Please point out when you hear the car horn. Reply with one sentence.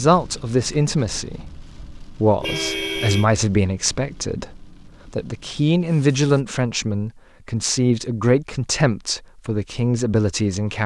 You can hear the car horn from 2.4 to 3.3 s.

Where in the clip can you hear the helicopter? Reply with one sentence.
The helicopter can't be heard in this clip.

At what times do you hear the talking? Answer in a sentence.
The talking can be heard from 0.0 to 10.8 s.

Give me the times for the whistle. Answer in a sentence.
You can't hear the whistle here.